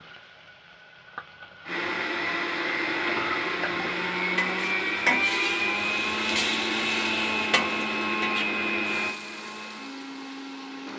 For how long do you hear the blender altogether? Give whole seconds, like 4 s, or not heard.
9 s.